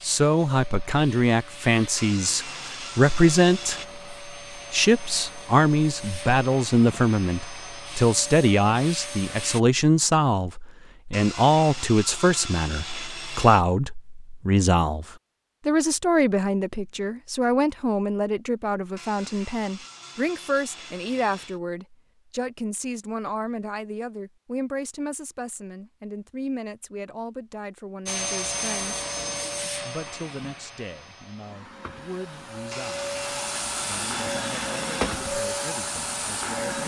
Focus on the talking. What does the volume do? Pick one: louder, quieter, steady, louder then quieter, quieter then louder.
quieter.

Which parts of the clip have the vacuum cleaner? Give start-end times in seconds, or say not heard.
0.0-9.6, 28.1-36.8.